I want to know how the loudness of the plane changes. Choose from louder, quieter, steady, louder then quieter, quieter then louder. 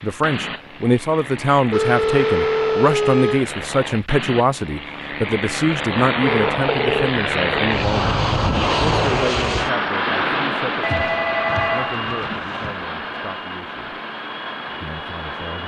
louder then quieter.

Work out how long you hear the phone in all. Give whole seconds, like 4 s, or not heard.
5 s.